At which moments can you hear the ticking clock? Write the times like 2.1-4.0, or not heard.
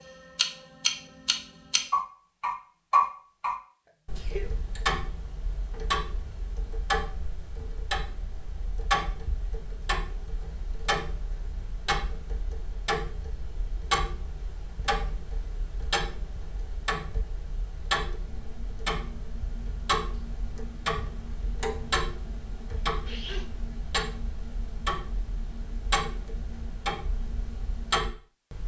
0.0-28.6.